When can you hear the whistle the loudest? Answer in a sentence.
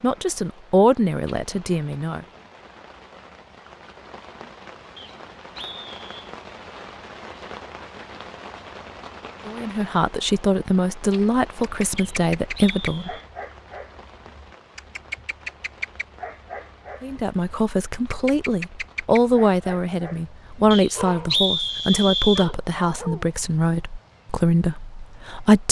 The volume of the whistle peaks at 21 seconds.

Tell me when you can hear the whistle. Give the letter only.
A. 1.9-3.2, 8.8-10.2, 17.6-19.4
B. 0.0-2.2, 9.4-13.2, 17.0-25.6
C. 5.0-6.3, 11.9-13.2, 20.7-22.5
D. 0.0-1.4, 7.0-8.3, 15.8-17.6
C.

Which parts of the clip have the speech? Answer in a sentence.
You can hear the speech from 0.0 to 2.2 s, from 9.4 to 13.2 s and from 17.0 to 25.6 s.